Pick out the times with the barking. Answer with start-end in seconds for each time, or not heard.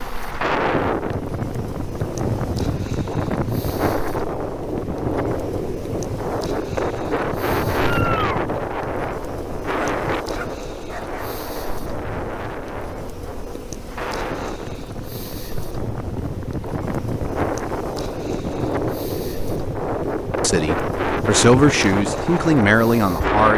9.8-11.2.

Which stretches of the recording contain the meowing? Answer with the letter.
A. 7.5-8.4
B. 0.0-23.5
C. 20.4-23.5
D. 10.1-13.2
A.